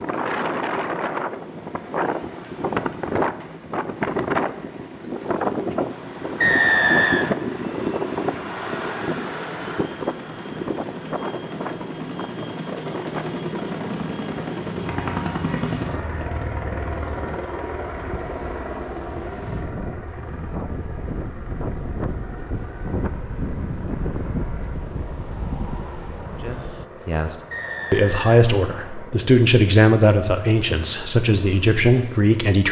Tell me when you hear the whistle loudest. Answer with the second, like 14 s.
7 s.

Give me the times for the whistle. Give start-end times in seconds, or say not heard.
6.4-7.3, 27.5-29.1.